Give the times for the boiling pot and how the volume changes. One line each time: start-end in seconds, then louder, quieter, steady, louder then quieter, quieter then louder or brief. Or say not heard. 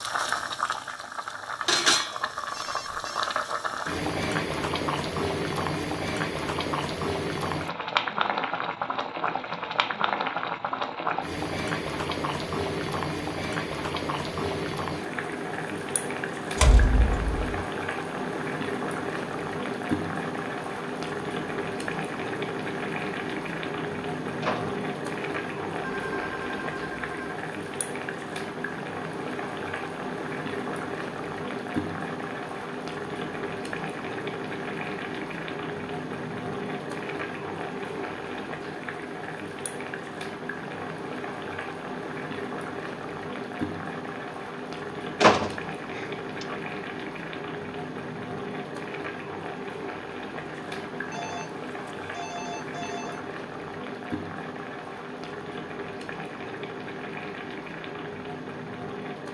0.0-59.3 quieter.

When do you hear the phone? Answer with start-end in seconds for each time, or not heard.
2.5-3.3, 25.8-27.4, 51.1-53.2.